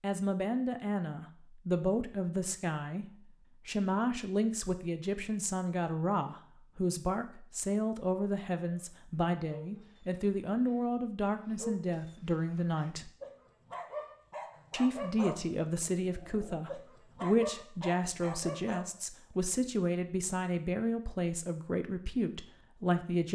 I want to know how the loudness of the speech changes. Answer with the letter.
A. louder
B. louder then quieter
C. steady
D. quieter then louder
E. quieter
C.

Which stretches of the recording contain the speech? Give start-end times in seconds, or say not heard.
0.0-13.1, 14.7-23.2.